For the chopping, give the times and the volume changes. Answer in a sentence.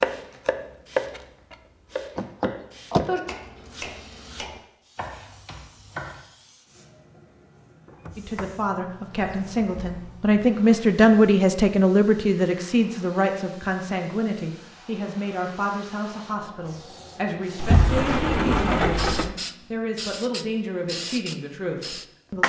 The chopping can be heard from 0.0 to 6.2 s, getting quieter.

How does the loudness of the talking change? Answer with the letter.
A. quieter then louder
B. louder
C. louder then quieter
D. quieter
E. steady
D.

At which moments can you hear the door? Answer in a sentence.
The door can be heard from 2.1 to 3.1 s, from 7.8 to 8.5 s, from 9.1 to 10.2 s and from 17.6 to 19.4 s.